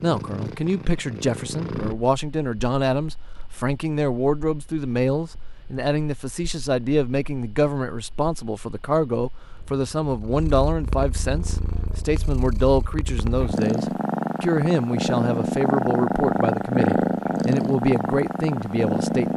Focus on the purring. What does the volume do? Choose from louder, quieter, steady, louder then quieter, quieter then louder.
quieter then louder.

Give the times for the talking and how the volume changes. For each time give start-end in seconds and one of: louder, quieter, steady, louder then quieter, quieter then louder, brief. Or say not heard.
0.0-19.3 steady.